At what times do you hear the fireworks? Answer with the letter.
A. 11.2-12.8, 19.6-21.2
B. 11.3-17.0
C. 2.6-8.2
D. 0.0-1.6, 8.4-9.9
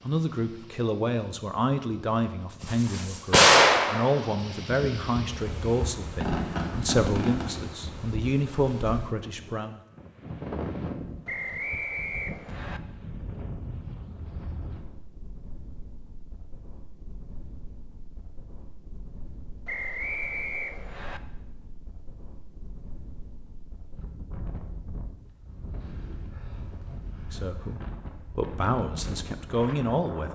C.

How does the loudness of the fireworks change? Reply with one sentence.
The loudness of the fireworks goes down, then up.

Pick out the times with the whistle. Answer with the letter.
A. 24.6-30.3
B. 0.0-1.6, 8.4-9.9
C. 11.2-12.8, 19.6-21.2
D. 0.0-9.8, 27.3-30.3
C.